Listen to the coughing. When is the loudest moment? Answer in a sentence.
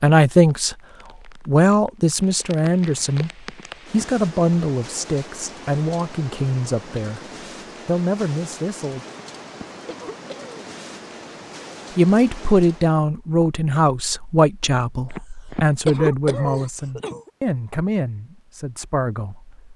The volume of the coughing peaks at 16 seconds.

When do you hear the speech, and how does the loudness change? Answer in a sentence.
The speech can be heard from 0.0 to 7.2 s, getting quieter; briefly from 7.8 to 9.1 s; and from 11.9 to 19.7 s, getting quieter.